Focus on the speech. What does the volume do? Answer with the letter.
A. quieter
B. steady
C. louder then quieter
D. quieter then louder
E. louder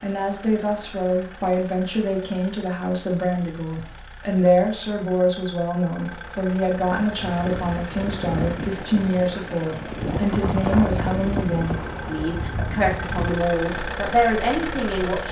B.